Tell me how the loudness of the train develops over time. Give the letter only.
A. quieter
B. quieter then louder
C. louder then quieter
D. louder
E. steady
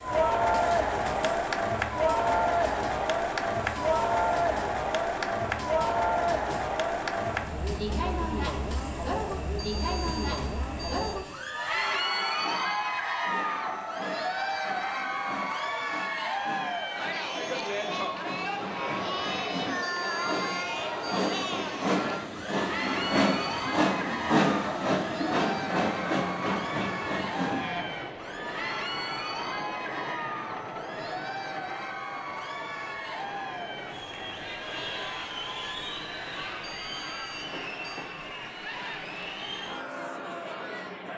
C.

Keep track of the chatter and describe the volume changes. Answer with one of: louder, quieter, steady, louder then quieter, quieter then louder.
quieter.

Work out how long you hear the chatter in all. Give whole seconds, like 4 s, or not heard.
41 s.